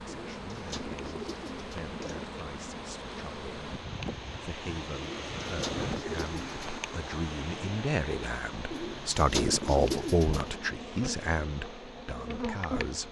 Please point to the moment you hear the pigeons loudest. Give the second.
10 s.